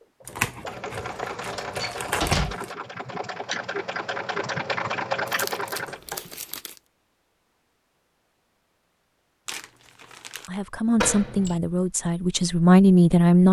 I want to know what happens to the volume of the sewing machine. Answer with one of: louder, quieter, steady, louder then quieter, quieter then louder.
louder.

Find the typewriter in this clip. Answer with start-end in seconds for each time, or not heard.
not heard.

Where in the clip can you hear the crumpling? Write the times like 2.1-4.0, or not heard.
0.2-2.7, 5.2-6.8, 9.4-10.5.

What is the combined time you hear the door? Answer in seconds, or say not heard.
2 s.